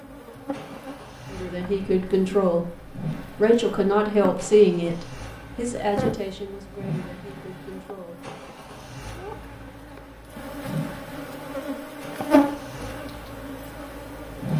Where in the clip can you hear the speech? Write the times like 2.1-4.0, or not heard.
1.3-8.2.